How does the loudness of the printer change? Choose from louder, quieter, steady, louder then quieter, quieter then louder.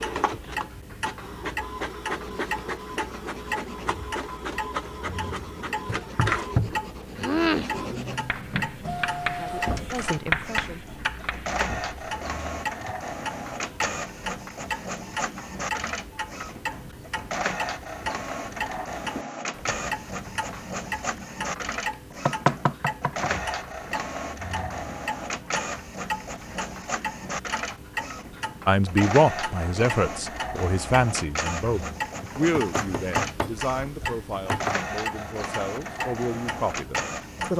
steady.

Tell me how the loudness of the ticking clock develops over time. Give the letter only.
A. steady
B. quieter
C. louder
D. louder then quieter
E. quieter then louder
A.